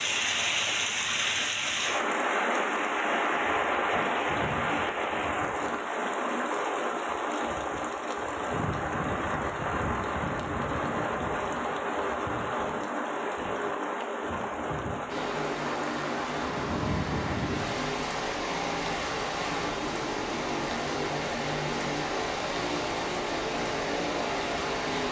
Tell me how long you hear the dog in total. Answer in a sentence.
The dog can't be heard in this clip.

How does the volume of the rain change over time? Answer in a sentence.
The volume of the rain goes down.